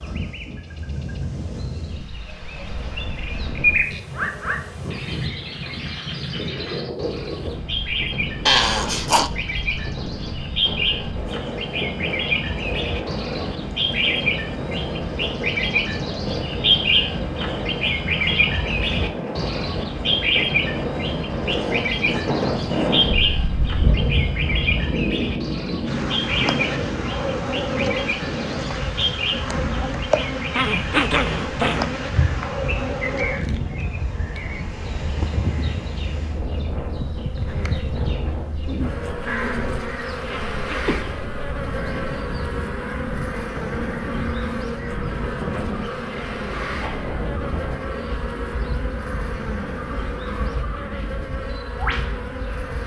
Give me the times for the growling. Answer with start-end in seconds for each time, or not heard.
8.4-9.3, 30.6-31.9, 40.5-41.0.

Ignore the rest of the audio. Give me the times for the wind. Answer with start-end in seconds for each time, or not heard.
0.0-52.8.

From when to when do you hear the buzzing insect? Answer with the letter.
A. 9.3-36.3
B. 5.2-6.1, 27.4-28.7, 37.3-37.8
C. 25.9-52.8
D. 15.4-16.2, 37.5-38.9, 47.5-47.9
C.